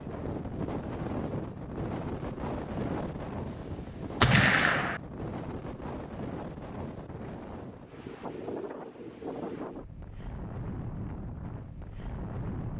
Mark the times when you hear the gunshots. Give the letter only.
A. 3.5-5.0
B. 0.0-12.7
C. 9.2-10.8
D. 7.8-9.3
A.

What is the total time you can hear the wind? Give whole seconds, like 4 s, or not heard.
13 s.